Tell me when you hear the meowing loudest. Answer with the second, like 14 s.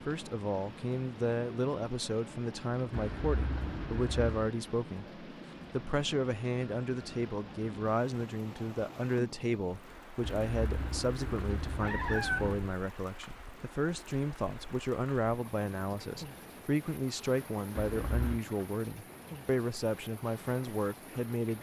12 s.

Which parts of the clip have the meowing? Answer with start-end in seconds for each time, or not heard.
2.9-4.5, 10.2-12.7, 17.8-18.4.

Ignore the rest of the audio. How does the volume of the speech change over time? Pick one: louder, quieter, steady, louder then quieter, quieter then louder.
steady.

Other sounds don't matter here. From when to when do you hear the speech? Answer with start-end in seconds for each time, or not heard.
0.1-21.5.